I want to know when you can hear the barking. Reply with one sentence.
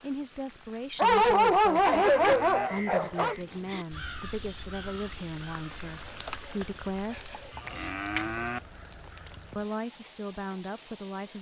You can hear the barking from 0.9 to 3.4 s and from 6.0 to 7.8 s.